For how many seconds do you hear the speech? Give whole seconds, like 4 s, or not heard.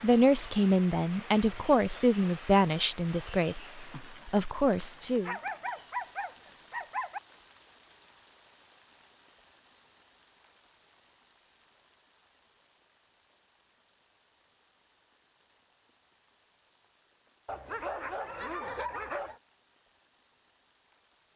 5 s.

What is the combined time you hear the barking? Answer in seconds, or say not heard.
4 s.